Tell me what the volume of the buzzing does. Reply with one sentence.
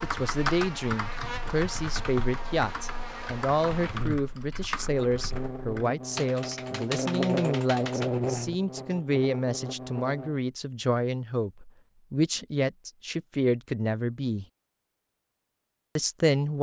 The volume of the buzzing goes up.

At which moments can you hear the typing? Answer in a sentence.
You can hear the typing from 0.0 to 8.1 s.